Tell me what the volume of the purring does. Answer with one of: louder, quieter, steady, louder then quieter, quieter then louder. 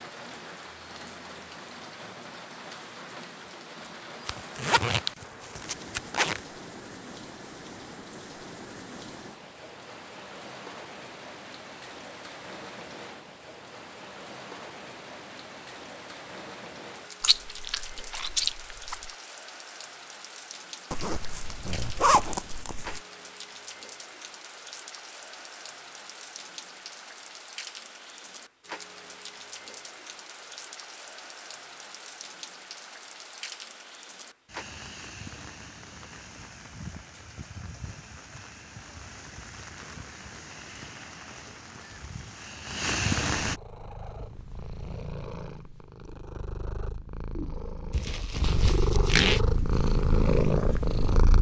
louder.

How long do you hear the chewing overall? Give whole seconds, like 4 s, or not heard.
2 s.